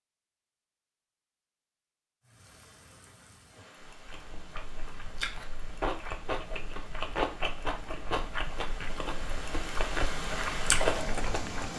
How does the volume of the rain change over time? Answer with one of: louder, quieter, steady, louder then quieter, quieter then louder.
louder.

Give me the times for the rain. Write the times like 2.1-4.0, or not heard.
2.2-11.7.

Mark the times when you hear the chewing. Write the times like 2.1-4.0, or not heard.
3.8-11.7.